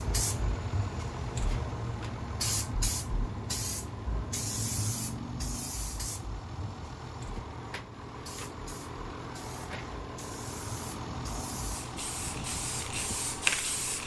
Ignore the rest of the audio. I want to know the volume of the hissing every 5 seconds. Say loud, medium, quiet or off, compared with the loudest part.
loud, medium, loud.